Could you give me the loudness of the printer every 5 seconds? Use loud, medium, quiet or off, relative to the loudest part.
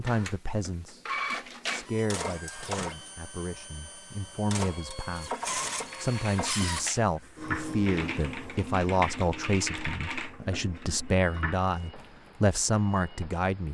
loud, loud, quiet.